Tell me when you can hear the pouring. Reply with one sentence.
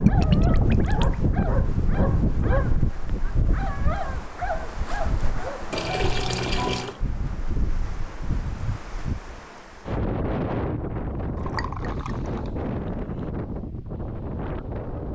The pouring can be heard from 0.1 to 1.2 s, from 5.7 to 7.0 s and from 11.3 to 13.2 s.